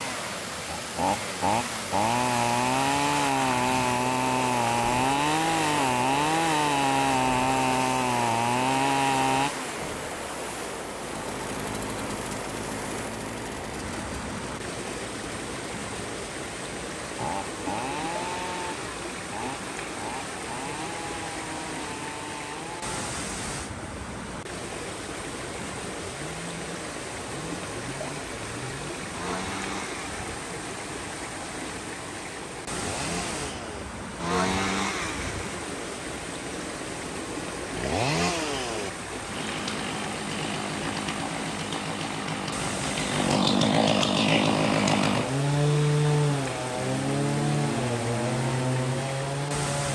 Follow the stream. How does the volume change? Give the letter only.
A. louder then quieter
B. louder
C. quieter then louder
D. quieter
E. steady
E.